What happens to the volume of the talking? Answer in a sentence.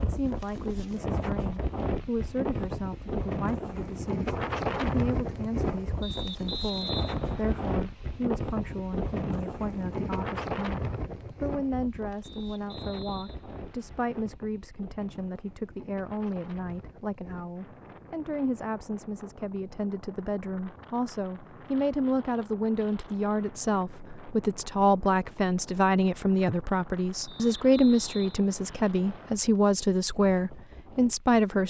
The volume of the talking goes up.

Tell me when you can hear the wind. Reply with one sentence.
You can hear the wind from 0.0 to 31.6 s.